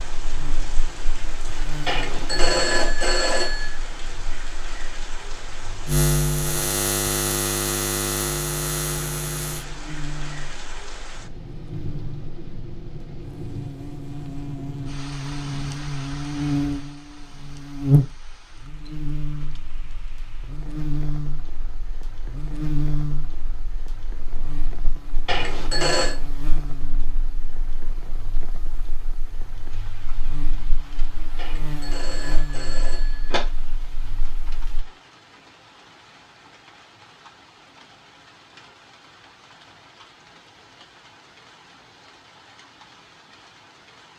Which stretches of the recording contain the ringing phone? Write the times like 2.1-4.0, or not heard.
1.9-3.8, 25.2-26.1, 31.4-33.4.